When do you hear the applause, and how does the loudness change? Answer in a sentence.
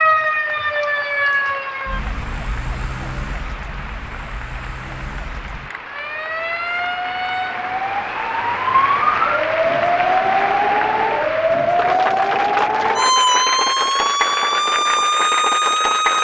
You can hear the applause from 0.1 to 16.1 s, getting louder.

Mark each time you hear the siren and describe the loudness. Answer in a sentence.
The siren can be heard from 0.0 to 16.1 s, getting quieter then louder.